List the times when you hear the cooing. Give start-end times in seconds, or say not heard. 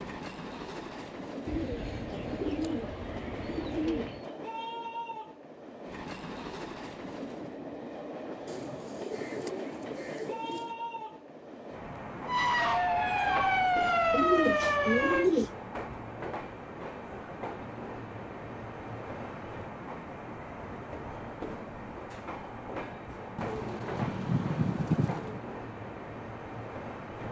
1.4-4.2, 8.4-10.8, 14.1-15.5, 23.4-25.4.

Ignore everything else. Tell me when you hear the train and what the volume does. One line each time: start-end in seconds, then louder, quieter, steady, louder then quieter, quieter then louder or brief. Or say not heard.
0.0-27.2 steady.